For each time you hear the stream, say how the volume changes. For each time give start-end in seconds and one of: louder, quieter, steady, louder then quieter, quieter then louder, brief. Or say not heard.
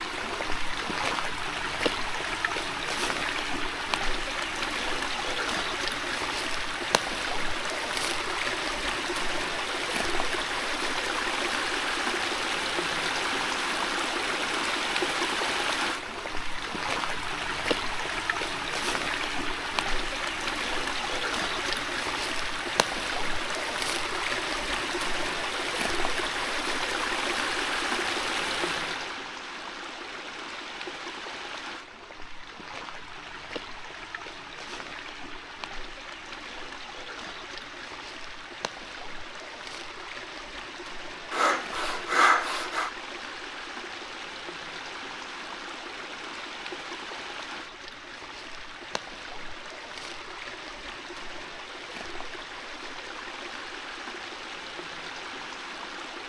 0.0-56.2 quieter.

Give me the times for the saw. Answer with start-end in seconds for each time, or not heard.
41.3-42.9.